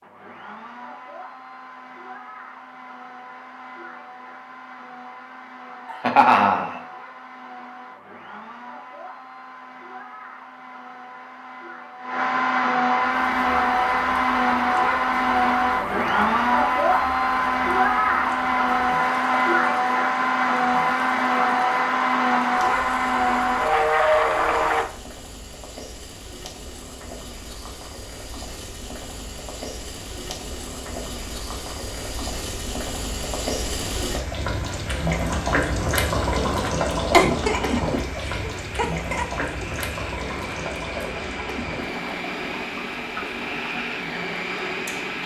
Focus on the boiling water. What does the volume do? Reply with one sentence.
The loudness of the boiling water goes up, then down.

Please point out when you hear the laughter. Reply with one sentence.
You can hear the laughter from 5.8 to 6.8 s and from 37.1 to 39.6 s.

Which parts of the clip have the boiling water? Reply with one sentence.
The boiling water can be heard from 13.2 to 45.2 s.